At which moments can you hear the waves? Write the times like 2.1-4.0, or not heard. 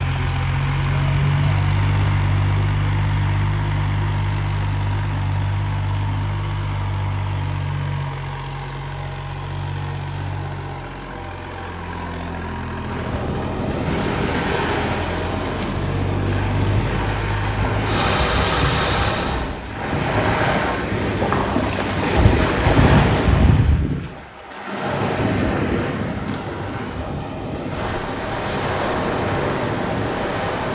12.8-30.7.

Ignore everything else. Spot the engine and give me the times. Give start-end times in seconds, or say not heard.
0.0-19.5.